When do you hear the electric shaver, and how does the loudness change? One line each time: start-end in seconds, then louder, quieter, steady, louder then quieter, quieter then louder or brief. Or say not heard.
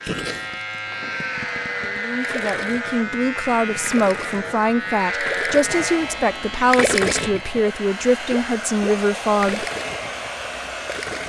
0.0-11.1 quieter.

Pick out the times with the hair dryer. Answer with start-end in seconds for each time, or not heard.
5.7-11.2.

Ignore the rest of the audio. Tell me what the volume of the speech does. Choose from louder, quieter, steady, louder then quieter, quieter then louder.
steady.